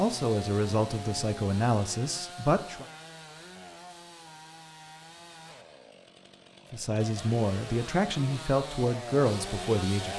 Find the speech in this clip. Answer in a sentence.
The speech can be heard from 0.0 to 2.9 s and from 6.7 to 10.1 s.